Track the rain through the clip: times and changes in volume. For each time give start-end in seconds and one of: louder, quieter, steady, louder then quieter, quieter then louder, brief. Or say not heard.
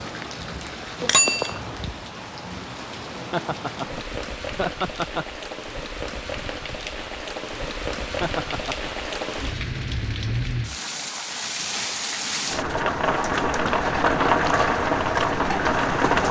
0.0-16.2 louder.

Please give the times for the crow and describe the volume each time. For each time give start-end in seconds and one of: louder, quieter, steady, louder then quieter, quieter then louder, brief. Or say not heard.
not heard.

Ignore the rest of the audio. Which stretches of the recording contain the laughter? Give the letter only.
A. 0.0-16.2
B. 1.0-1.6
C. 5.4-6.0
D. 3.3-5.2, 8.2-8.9
D.